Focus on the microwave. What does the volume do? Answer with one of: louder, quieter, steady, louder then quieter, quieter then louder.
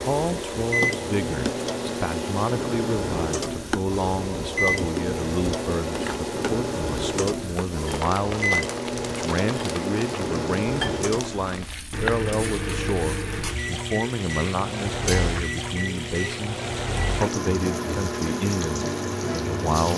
steady.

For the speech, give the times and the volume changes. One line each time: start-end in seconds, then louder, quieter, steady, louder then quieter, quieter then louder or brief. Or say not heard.
0.0-19.9 steady.